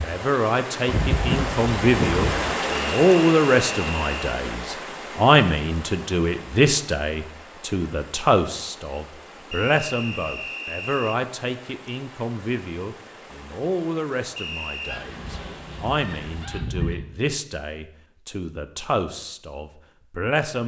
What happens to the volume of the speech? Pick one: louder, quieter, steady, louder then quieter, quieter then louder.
quieter.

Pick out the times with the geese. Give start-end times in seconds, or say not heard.
0.8-2.5, 14.8-17.0.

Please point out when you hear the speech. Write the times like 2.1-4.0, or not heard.
0.0-20.6.